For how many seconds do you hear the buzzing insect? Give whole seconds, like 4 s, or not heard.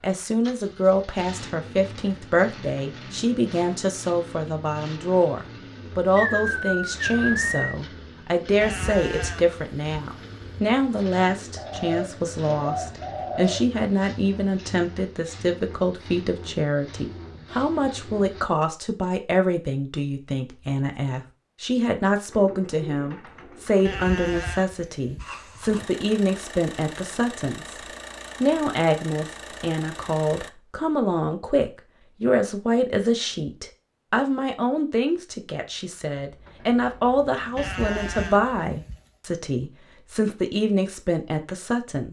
not heard.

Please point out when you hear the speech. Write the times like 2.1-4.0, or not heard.
0.0-27.8, 28.4-42.0.